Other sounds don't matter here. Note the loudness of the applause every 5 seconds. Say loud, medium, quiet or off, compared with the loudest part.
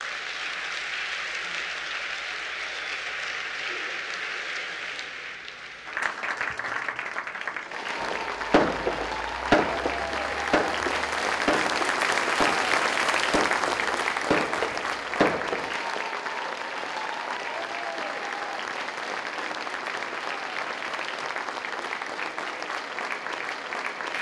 medium, medium, loud, medium, medium.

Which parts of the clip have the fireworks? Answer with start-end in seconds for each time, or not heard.
8.0-15.8.